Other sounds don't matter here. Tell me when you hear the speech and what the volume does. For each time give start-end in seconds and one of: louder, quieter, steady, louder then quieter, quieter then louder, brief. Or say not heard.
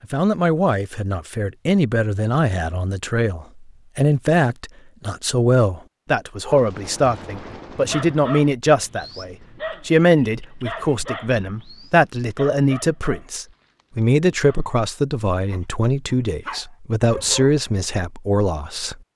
0.0-18.9 steady.